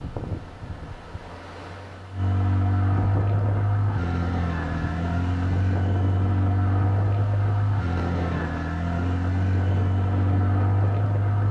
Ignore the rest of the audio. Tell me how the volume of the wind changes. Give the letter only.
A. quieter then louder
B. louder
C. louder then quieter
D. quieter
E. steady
B.